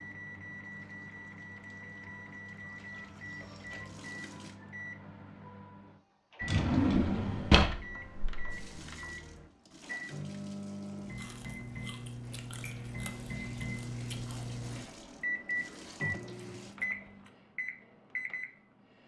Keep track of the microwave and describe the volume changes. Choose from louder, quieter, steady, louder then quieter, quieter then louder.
louder.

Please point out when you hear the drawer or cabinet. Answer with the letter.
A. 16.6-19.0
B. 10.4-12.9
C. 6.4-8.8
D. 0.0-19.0
C.